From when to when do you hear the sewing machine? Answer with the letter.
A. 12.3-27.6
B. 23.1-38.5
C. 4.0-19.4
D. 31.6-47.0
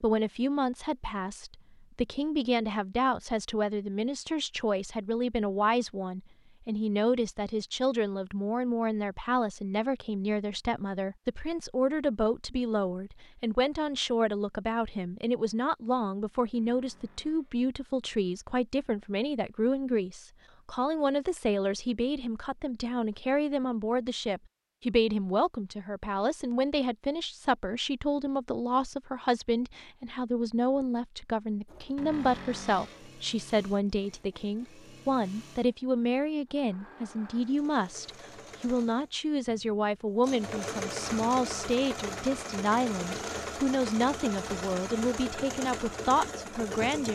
D.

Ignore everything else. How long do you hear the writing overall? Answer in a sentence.
The writing can't be heard in this clip.